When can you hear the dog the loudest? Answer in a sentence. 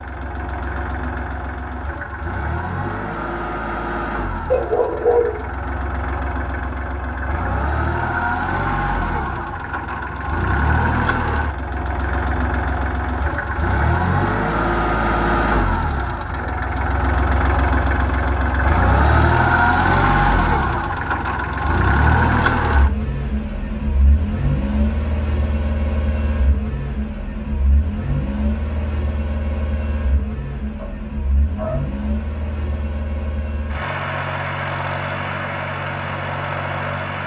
The loudest moment of the dog is at 5 seconds.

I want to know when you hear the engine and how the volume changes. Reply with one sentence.
The engine can be heard from 0.0 to 37.2 s, getting louder then quieter.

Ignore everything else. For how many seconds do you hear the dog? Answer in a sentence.
The dog can be heard for 2 seconds in total.